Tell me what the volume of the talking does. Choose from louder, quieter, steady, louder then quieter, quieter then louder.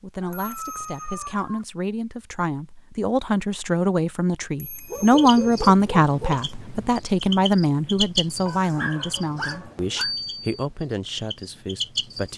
louder then quieter.